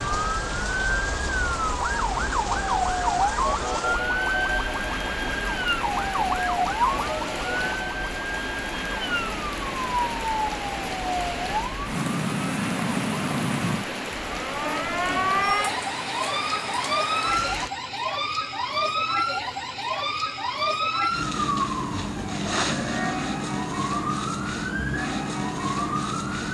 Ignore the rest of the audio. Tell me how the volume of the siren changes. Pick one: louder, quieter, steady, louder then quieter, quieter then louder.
steady.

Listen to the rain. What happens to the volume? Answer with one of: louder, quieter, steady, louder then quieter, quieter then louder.
steady.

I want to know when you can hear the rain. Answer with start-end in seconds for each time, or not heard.
0.0-17.7.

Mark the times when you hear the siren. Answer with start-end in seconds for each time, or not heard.
0.0-26.4.